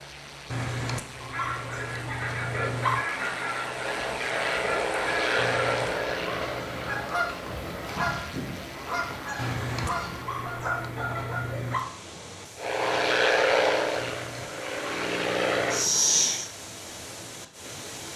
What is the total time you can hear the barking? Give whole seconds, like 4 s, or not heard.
9 s.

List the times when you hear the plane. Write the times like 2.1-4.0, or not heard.
0.0-10.5, 12.6-16.5.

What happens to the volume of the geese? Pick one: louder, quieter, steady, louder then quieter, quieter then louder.
steady.